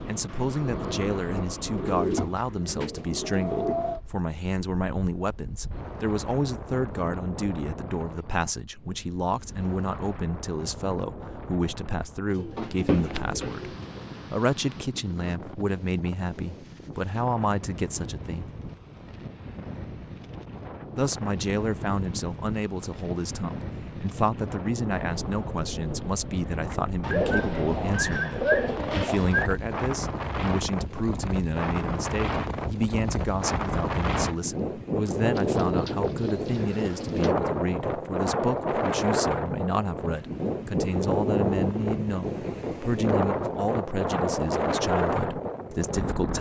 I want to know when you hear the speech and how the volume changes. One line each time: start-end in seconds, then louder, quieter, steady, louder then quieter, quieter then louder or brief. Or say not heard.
0.1-18.5 steady
20.9-46.3 steady.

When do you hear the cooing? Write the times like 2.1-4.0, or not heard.
1.7-3.8, 12.3-14.3, 27.0-29.5, 35.4-37.3.